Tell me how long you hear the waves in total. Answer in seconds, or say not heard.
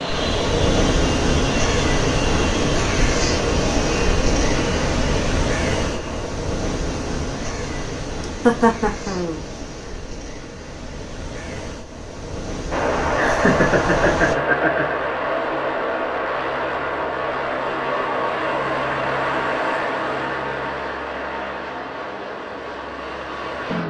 14 s.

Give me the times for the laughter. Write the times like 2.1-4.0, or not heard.
8.4-9.4, 13.2-15.0.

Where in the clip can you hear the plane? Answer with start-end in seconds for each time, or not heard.
0.0-6.3, 12.7-23.8.